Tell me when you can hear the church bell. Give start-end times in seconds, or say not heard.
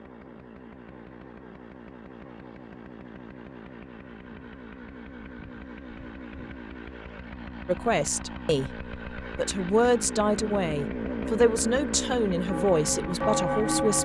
12.4-13.9.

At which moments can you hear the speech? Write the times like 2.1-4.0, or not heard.
7.7-13.9.